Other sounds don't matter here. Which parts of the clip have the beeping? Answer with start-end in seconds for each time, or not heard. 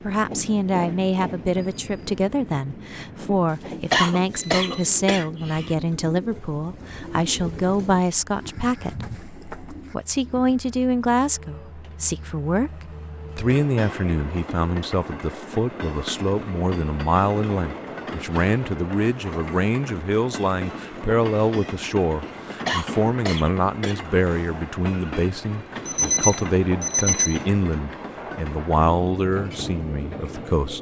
3.5-4.9, 25.9-27.4.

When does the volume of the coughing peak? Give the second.
4 s.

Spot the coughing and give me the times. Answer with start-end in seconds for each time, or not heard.
3.9-5.8, 22.6-24.0.